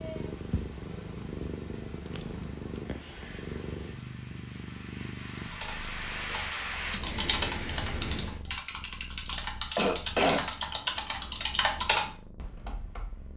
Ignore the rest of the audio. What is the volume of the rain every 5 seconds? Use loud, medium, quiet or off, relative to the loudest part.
quiet, loud, off.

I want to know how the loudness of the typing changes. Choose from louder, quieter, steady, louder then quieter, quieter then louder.
louder.